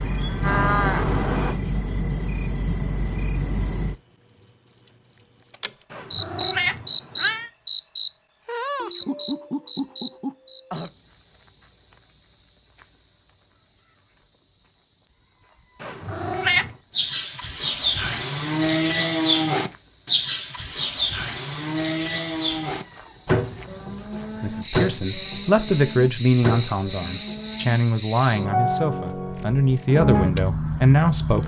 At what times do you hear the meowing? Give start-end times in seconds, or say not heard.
5.9-7.5, 15.8-16.8.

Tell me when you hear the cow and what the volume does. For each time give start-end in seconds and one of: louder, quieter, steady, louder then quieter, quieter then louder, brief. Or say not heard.
0.0-1.6 brief
16.9-27.8 quieter.